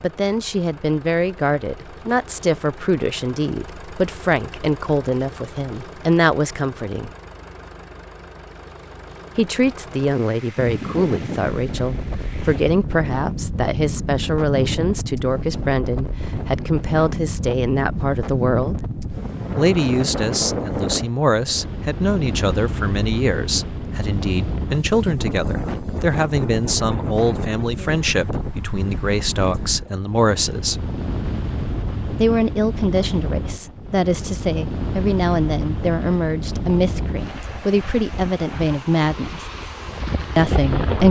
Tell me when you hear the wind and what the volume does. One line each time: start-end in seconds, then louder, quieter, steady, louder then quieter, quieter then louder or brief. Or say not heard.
10.6-41.0 steady.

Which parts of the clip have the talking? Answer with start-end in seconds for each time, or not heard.
0.0-7.1, 9.3-18.8, 19.6-30.8, 32.1-39.5, 40.4-41.0.